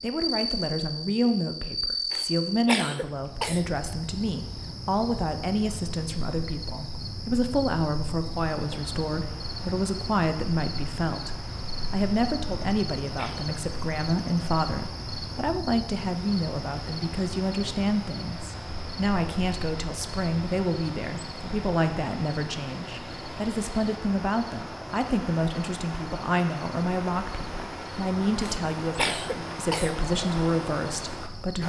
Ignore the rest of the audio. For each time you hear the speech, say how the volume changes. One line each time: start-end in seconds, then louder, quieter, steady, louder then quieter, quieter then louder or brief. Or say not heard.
0.0-31.6 steady.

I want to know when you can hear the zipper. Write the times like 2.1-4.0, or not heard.
not heard.